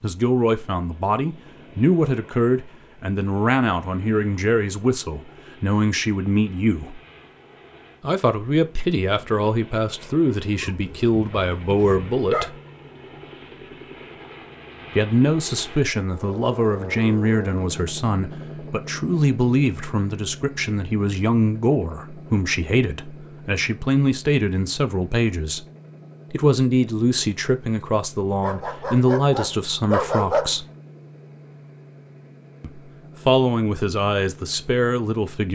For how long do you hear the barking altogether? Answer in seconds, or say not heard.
4 s.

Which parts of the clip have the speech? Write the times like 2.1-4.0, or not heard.
0.0-7.0, 8.0-12.6, 14.9-25.6, 26.3-30.6, 32.6-35.5.